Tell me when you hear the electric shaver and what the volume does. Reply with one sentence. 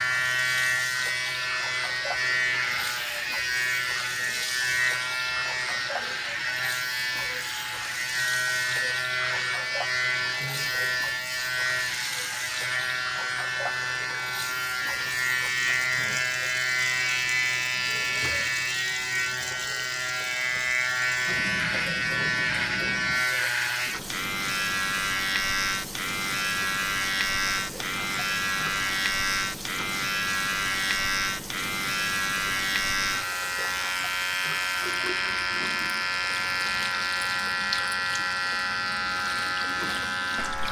You can hear the electric shaver from 0.0 to 40.6 s, at a steady volume.